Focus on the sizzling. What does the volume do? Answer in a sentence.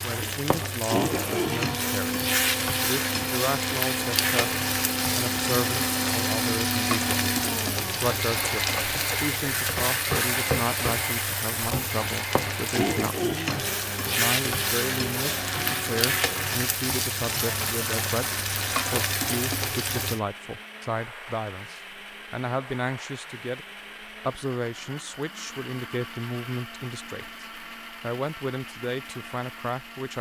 The volume of the sizzling stays about the same.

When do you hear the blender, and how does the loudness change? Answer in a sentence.
You can hear the blender from 0.0 to 30.1 s, getting quieter.